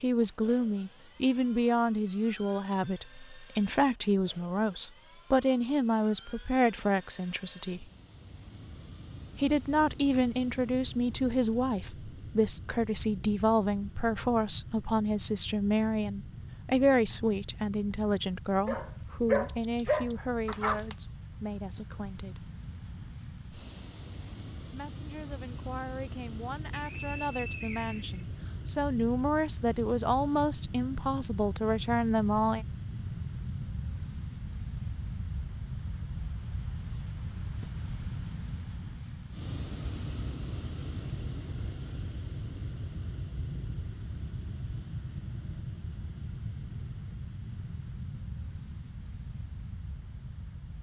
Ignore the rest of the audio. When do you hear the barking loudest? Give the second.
19 s.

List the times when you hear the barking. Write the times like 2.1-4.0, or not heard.
18.6-20.9.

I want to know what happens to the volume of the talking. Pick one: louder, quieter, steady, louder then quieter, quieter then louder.
quieter then louder.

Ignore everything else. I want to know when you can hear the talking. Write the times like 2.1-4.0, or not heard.
0.0-7.8, 9.3-22.5, 24.7-32.6.